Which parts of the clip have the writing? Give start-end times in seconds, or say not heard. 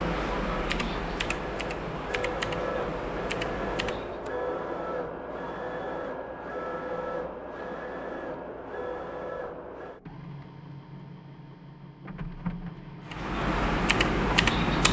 not heard.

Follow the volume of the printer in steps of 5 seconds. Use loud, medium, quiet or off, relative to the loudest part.
loud, loud, medium.